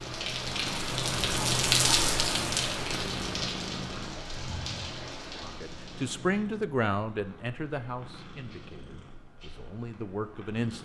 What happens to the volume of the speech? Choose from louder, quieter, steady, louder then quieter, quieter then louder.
quieter then louder.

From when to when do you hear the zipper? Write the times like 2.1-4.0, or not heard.
not heard.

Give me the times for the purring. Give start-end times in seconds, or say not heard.
0.0-10.7.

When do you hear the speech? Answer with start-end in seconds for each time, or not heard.
5.4-10.7.